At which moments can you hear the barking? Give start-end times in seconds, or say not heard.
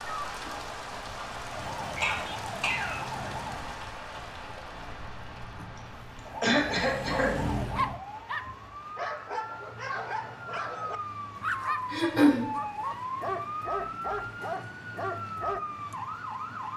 7.0-15.6.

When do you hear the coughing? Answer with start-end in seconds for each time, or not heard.
1.9-3.0, 6.4-7.6, 11.9-12.4.